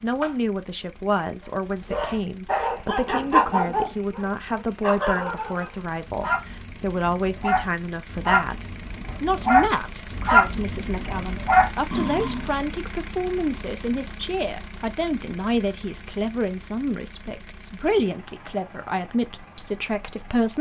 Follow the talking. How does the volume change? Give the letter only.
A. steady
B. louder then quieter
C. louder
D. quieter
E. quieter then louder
A.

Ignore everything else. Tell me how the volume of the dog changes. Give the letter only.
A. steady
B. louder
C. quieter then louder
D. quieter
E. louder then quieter
C.